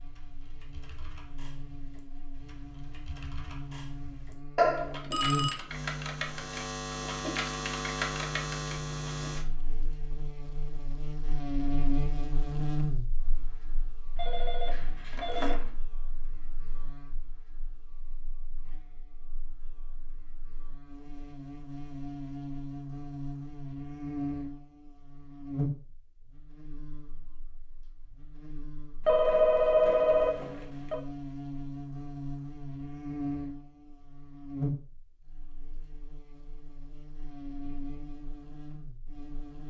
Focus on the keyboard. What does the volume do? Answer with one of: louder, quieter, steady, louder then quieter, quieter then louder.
louder.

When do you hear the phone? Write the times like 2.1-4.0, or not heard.
4.5-5.6, 14.2-15.7, 29.1-31.0.